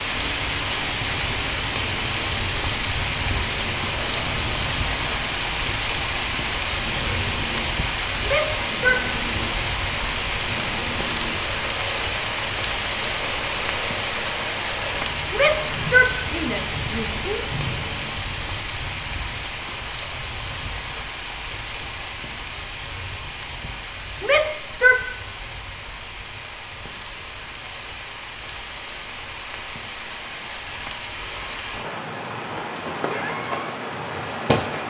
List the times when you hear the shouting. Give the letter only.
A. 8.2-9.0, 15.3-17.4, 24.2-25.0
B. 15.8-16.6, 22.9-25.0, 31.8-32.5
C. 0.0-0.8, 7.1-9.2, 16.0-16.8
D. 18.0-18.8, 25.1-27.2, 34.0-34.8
A.